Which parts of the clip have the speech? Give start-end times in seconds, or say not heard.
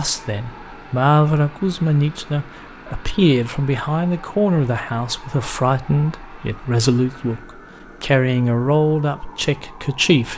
0.0-10.3.